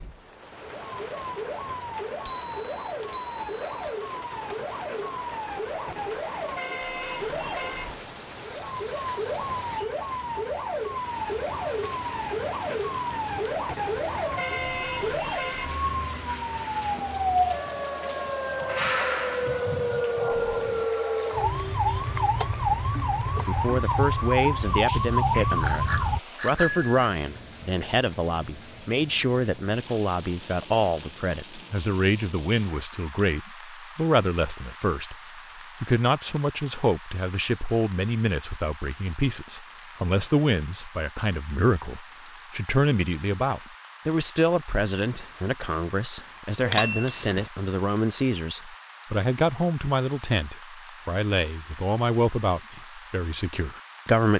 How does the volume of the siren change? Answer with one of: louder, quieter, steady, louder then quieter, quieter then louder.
louder.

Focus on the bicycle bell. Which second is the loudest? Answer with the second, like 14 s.
27 s.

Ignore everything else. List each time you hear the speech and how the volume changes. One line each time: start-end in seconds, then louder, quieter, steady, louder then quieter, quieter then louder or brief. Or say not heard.
23.4-54.3 steady.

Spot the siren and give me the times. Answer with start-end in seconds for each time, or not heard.
0.0-26.2.